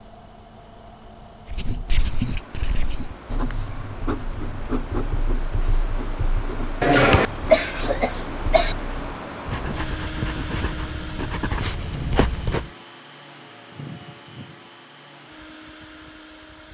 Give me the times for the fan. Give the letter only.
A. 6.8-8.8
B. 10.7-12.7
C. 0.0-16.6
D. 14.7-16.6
C.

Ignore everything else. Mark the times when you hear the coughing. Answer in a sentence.
You can hear the coughing from 6.8 to 8.8 s.